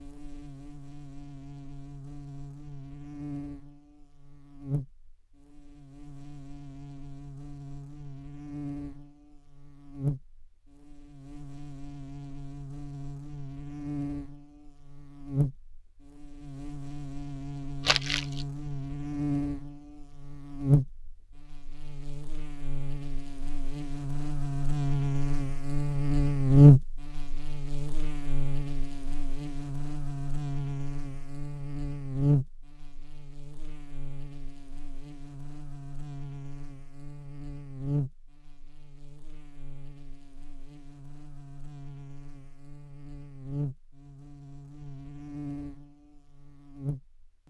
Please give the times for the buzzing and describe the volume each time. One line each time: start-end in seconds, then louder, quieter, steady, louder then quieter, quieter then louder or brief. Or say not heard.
0.0-47.4 louder then quieter.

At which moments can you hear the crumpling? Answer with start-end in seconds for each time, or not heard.
17.9-18.4.